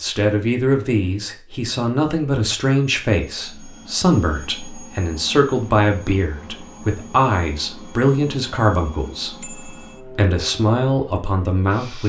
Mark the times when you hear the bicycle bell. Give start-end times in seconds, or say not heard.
9.4-10.0.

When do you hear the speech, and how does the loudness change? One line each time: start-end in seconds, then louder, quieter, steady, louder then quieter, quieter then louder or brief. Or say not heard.
0.0-12.0 steady.